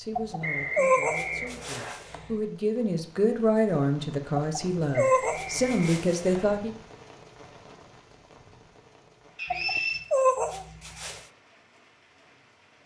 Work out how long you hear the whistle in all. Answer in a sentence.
You can hear the whistle for 4 seconds altogether.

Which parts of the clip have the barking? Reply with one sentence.
You can hear the barking from 0.1 to 2.4 s, from 4.4 to 6.4 s and from 9.5 to 11.2 s.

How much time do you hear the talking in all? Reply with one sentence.
You can hear the talking for 7 seconds altogether.